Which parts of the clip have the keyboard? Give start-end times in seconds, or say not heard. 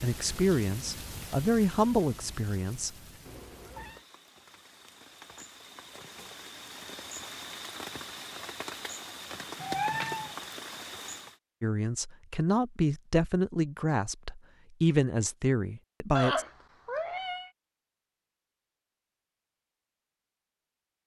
not heard.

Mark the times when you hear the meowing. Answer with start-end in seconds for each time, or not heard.
3.2-4.0, 9.6-10.3, 16.1-17.5.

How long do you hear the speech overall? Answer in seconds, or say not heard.
8 s.